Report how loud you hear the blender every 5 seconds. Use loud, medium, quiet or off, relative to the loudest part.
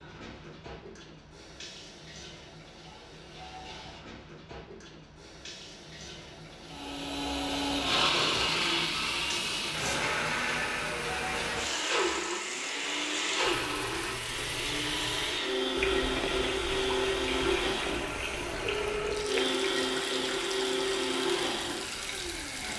off, loud, loud, loud, loud.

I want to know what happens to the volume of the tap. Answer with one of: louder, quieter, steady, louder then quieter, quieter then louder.
louder.